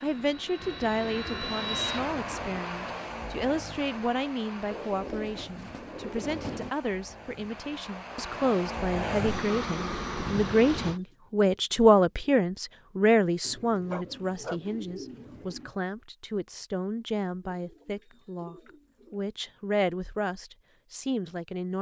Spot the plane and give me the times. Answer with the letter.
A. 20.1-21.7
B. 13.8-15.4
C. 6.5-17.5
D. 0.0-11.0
D.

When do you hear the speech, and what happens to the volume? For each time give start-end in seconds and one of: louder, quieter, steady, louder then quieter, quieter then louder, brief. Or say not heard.
0.0-21.7 louder then quieter.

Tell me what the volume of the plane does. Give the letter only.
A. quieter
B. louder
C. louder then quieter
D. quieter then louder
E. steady
D.